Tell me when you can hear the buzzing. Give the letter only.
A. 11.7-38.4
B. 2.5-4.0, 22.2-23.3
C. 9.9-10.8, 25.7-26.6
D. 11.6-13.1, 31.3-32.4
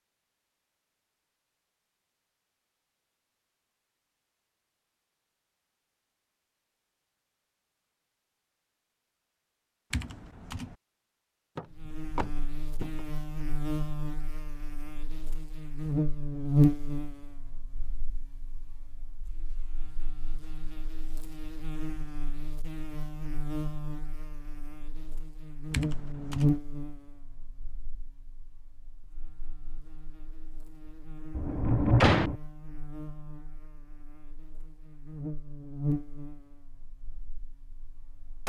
A.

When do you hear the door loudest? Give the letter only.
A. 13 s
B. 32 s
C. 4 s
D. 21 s
B.